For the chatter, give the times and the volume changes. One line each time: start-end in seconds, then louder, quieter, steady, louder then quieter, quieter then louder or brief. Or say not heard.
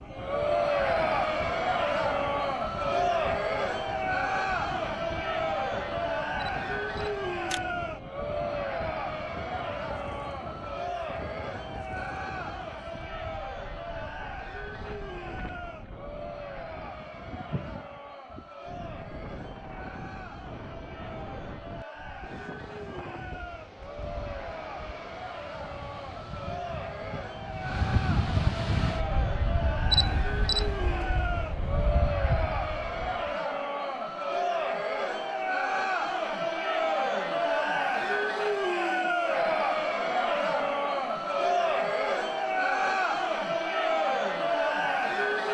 0.0-45.4 quieter then louder.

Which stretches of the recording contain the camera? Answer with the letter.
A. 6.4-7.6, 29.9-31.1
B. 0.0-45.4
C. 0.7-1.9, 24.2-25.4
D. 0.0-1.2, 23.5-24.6
A.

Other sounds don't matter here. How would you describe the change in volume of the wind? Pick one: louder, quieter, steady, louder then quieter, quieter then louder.
louder.